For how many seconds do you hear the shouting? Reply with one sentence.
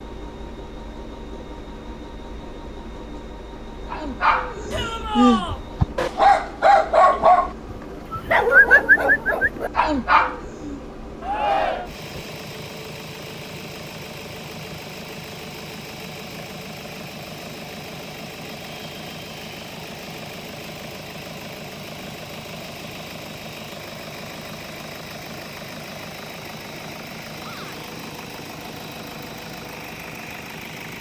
You can hear the shouting for 2 seconds altogether.